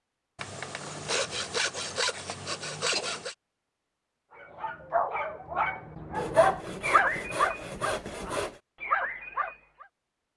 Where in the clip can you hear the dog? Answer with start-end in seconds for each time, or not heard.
4.3-9.8.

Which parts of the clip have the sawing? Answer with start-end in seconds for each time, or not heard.
0.3-3.4, 6.1-8.6.